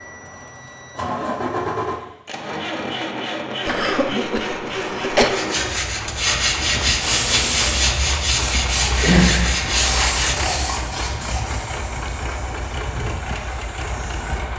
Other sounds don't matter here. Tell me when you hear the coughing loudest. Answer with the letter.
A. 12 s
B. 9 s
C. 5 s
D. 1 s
C.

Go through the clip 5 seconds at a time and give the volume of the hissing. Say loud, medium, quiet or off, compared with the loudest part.
off, loud, medium.